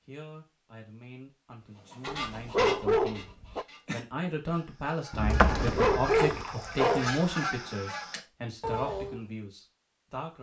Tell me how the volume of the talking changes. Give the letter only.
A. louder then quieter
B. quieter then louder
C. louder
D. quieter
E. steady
A.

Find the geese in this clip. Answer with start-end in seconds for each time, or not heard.
1.9-9.2.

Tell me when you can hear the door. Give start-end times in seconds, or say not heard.
5.1-6.5.